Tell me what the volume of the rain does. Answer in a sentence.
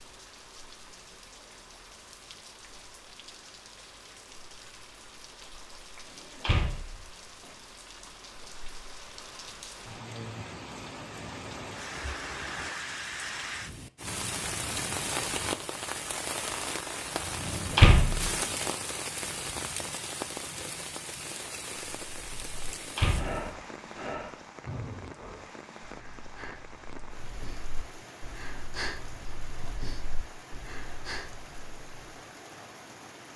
The loudness of the rain goes up, then down.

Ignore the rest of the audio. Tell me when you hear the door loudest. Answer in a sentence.
The loudest moment of the door is at 18 seconds.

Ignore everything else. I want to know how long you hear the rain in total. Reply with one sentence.
You can hear the rain for 33 seconds altogether.